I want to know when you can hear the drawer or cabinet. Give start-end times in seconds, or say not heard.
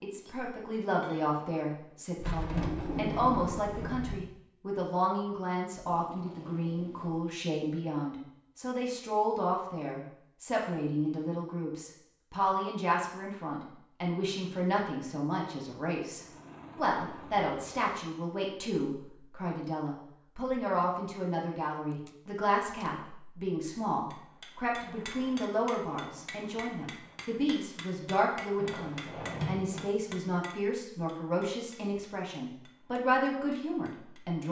2.1-4.2, 28.6-29.9.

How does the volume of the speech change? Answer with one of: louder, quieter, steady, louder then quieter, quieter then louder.
steady.